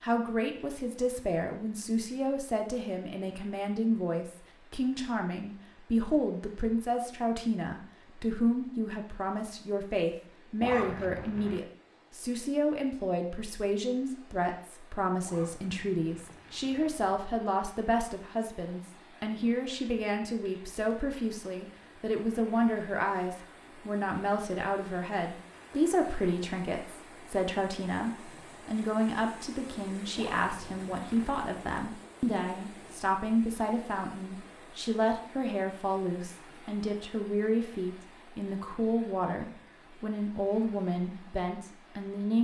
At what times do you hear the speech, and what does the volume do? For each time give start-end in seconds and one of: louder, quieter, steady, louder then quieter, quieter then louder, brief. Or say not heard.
0.0-42.4 steady.